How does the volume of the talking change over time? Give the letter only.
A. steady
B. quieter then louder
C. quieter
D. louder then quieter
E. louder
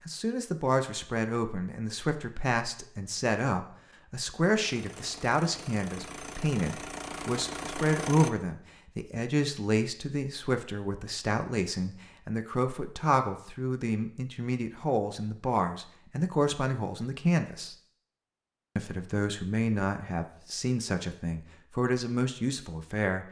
A.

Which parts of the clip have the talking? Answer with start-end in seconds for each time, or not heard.
0.1-17.8, 18.8-23.2.